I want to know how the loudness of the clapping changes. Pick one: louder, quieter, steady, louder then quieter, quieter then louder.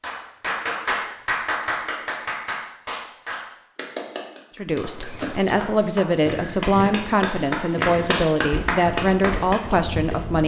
quieter then louder.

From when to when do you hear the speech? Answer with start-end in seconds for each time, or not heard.
4.5-10.4.